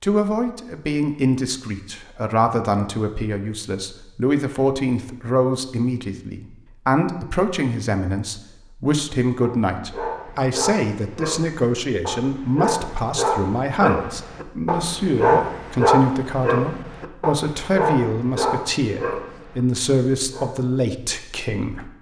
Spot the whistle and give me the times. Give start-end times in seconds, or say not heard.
not heard.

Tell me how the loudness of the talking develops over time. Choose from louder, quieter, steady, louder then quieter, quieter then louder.
steady.